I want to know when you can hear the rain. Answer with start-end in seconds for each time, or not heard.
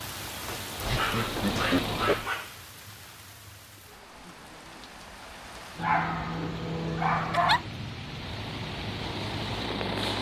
0.0-10.1.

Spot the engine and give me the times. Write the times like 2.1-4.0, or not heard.
0.0-2.3, 8.0-10.1.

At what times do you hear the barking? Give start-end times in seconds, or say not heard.
0.5-2.6, 5.8-7.7.